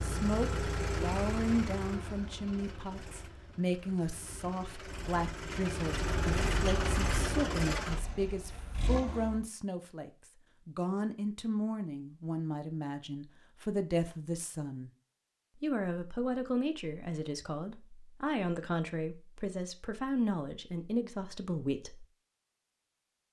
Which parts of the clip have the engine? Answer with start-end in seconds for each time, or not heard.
0.0-9.4.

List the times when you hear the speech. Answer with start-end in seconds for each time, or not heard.
0.0-14.9, 15.6-22.1.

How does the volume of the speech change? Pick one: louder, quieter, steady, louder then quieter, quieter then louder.
steady.